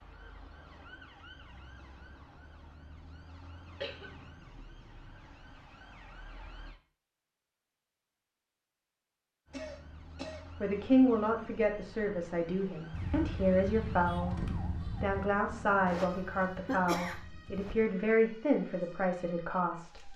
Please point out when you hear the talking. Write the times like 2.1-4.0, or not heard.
10.6-20.1.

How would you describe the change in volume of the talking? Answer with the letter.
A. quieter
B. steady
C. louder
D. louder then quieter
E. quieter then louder
B.